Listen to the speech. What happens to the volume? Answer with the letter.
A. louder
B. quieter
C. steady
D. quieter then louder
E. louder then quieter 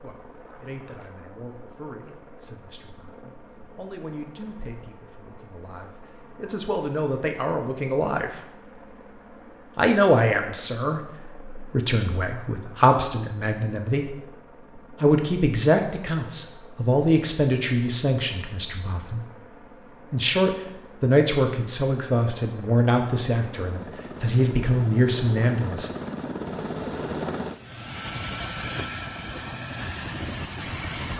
A.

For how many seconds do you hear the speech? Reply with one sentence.
The speech can be heard for 23 seconds in total.